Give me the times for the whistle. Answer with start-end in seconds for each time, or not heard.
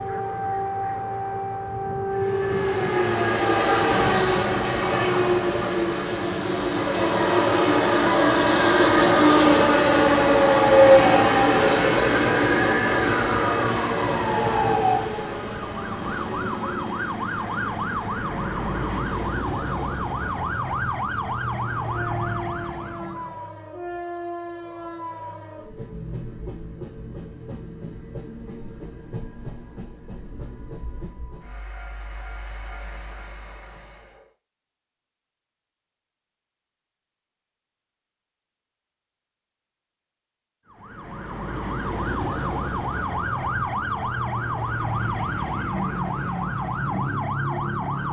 not heard.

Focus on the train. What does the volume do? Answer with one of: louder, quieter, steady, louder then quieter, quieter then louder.
quieter.